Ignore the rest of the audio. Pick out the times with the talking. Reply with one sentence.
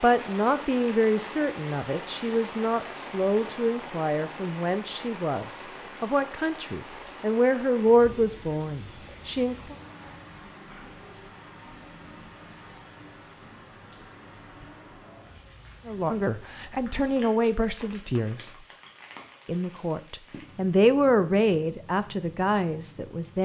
The talking can be heard from 0.0 to 9.8 s, from 15.8 to 18.5 s and from 19.4 to 23.3 s.